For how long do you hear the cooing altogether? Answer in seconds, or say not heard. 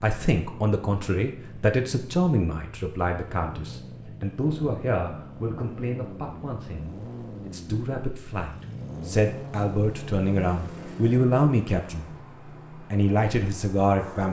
not heard.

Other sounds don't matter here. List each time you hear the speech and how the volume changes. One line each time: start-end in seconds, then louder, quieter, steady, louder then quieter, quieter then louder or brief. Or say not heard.
0.0-12.1 quieter then louder
12.9-14.2 brief.